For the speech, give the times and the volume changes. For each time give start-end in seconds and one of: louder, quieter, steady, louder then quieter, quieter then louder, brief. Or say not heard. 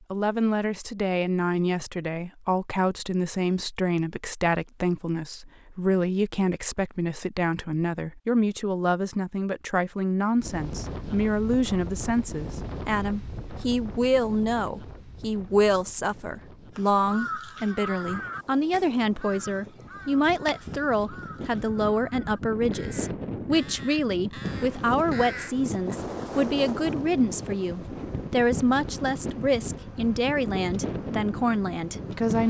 0.1-32.4 steady.